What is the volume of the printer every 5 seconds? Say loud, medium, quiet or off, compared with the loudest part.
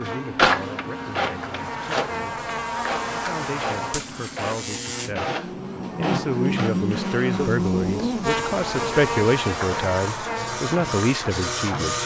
loud, medium, loud.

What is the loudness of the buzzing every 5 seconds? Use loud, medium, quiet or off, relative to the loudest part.
medium, loud, medium.